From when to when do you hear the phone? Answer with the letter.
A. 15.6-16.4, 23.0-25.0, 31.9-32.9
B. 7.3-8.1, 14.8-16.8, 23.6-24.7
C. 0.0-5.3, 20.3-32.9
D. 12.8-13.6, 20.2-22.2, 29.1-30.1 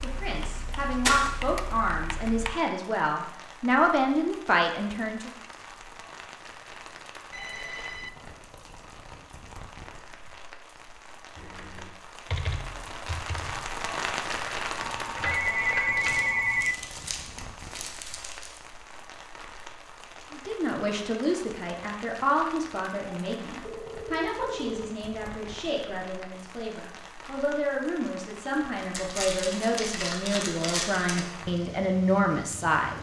B.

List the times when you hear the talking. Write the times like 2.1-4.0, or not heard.
0.0-5.3, 20.3-32.9.